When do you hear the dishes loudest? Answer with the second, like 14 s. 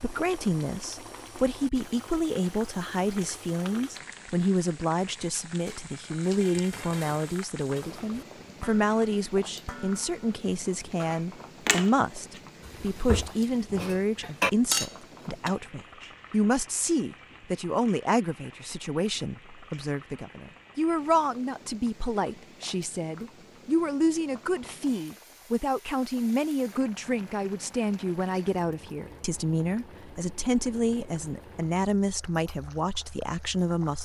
15 s.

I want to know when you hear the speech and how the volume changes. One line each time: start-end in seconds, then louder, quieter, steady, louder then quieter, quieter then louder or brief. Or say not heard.
0.0-33.9 steady.